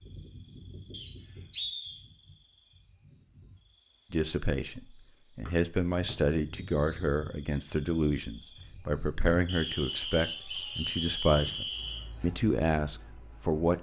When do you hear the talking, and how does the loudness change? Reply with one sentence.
You can hear the talking from 4.1 to 13.7 s, at a steady volume.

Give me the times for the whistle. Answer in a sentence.
You can hear the whistle from 0.9 to 2.0 s, from 5.5 to 7.0 s and from 9.4 to 12.1 s.